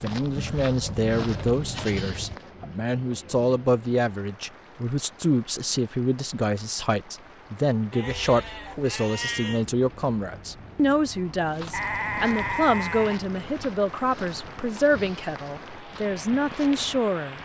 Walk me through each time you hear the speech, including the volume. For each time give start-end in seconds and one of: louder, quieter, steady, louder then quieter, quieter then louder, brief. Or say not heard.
0.0-17.4 steady.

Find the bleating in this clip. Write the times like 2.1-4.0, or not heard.
0.3-2.4, 7.9-9.7, 11.7-13.2.